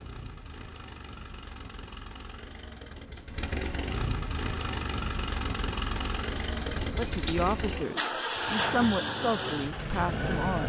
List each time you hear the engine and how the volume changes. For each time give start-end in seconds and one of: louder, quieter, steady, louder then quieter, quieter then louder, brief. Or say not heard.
0.0-10.6 louder.